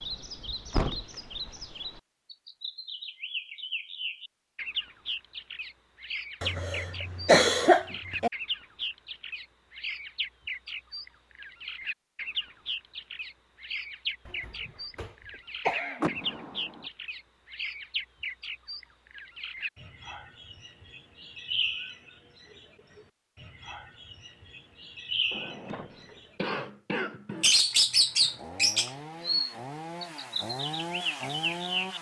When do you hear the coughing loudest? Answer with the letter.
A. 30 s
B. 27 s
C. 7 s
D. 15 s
C.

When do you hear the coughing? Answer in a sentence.
You can hear the coughing from 6.4 to 8.3 s, from 14.2 to 16.2 s and from 25.9 to 27.5 s.